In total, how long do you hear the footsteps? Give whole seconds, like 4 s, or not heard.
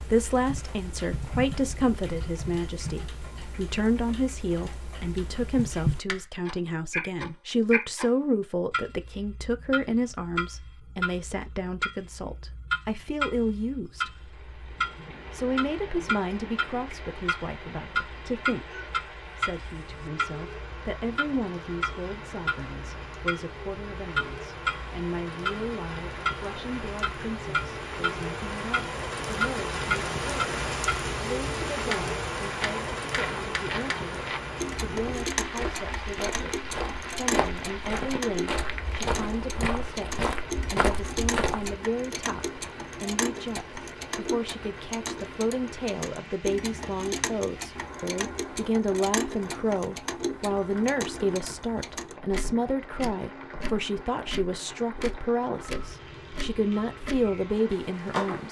9 s.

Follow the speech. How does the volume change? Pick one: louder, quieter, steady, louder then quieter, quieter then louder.
quieter then louder.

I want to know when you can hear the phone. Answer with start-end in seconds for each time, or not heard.
not heard.